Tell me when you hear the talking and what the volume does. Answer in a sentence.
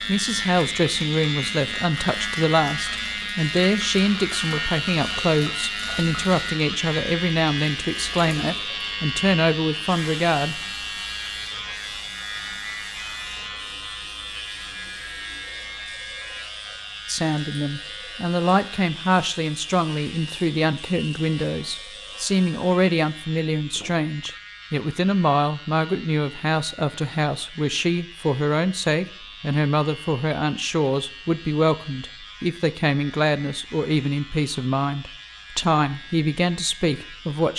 The talking can be heard from 0.0 to 10.6 s, at a steady volume; and from 17.1 to 37.5 s, at a steady volume.